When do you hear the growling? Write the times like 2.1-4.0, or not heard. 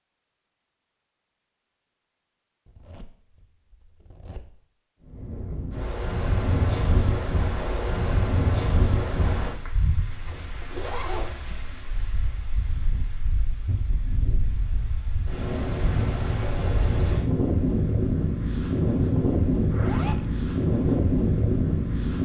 not heard.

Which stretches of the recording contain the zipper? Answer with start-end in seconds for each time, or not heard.
2.6-4.7, 10.2-11.6, 19.7-20.3.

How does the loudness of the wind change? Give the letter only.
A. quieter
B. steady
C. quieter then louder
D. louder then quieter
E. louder
C.